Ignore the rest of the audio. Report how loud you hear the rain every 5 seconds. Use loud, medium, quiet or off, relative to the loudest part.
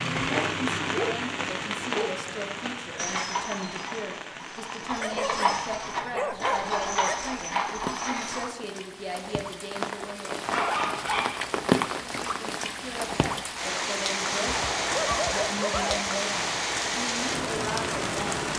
loud, medium, loud, loud.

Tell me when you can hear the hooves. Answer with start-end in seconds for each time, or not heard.
3.0-8.5.